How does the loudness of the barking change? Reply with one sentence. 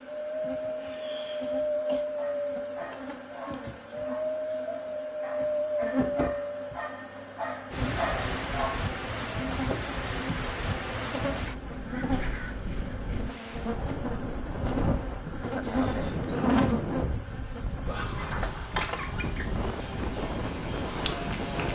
The loudness of the barking goes up.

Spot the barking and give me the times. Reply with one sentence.
You can hear the barking from 2.0 to 8.9 s.